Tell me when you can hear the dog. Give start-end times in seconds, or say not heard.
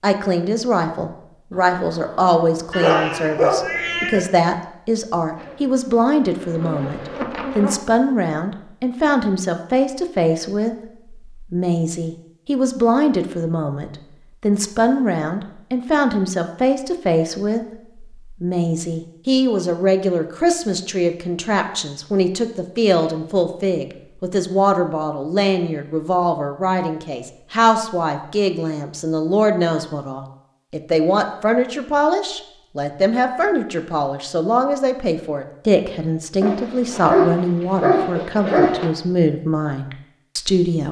2.7-4.2, 36.4-38.9.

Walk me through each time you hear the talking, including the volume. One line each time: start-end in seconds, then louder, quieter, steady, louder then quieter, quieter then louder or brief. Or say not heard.
0.0-40.8 steady.